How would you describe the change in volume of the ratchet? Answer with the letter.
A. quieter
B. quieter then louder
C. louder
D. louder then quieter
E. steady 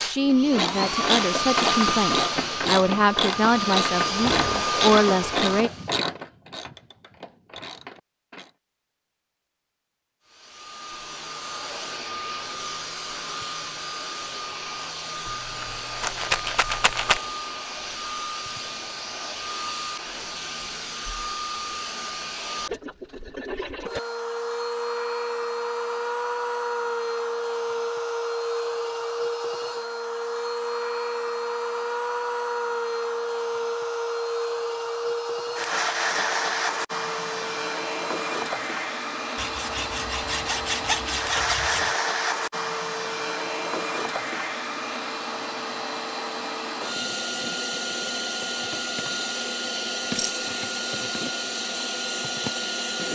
A.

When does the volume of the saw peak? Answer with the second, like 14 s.
41 s.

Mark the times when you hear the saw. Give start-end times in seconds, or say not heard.
39.4-42.0.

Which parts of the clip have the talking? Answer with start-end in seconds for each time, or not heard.
0.0-5.7.